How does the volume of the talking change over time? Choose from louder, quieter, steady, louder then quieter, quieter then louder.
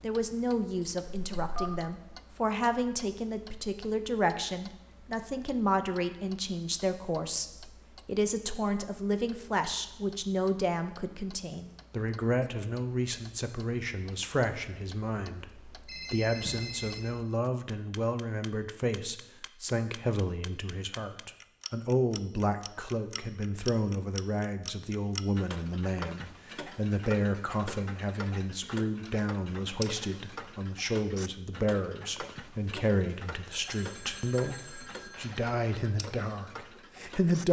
steady.